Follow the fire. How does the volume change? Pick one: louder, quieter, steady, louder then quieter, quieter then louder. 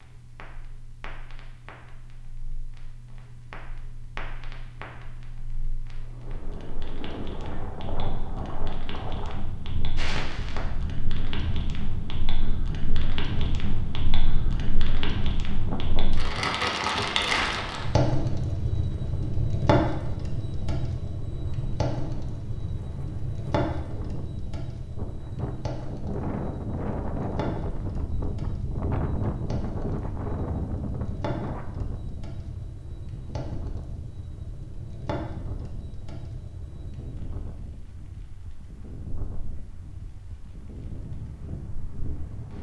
louder then quieter.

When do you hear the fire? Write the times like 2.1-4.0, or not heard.
0.0-42.5.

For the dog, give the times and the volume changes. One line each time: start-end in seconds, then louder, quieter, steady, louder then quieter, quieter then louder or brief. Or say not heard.
not heard.